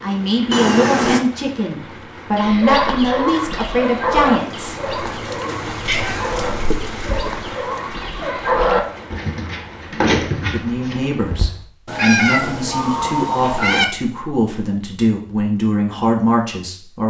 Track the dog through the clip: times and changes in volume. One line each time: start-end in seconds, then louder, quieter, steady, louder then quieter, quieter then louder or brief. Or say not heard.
2.4-11.5 quieter then louder.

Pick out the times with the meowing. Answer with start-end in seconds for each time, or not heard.
0.5-1.2, 5.8-7.4, 11.8-13.8.